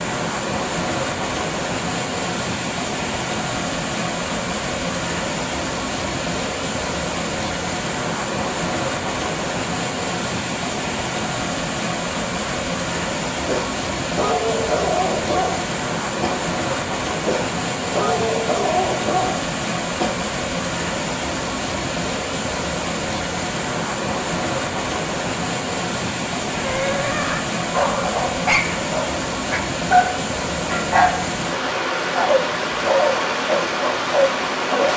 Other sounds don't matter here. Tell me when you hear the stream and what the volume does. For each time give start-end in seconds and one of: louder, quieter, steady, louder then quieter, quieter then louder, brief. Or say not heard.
0.0-34.9 steady.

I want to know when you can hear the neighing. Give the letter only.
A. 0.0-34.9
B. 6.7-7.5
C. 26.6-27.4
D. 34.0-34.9
C.